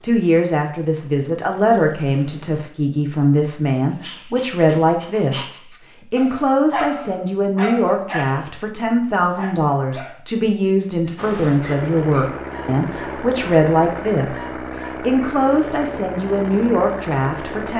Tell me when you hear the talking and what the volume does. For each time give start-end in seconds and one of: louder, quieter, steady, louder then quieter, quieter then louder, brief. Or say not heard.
0.0-17.7 steady.